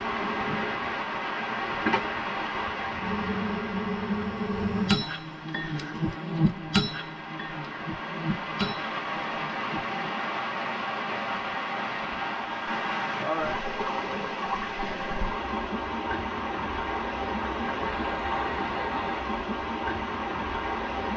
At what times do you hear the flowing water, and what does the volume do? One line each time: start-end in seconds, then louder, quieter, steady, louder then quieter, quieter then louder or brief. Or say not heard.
0.0-21.1 quieter then louder.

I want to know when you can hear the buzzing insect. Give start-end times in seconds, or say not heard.
0.0-10.1.